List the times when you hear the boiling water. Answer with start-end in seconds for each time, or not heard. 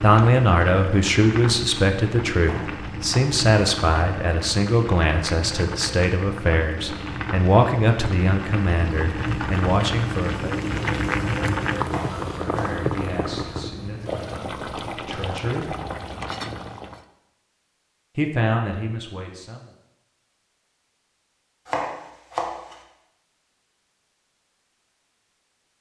0.0-17.1.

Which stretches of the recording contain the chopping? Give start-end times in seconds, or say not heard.
2.4-3.5, 11.8-12.9, 21.6-22.8.